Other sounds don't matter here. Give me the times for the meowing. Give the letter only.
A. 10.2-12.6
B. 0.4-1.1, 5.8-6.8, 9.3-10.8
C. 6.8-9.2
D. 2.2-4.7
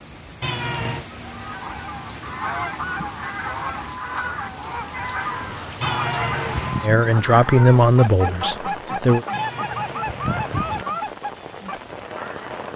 B.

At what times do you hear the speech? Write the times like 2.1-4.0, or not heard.
6.8-9.2.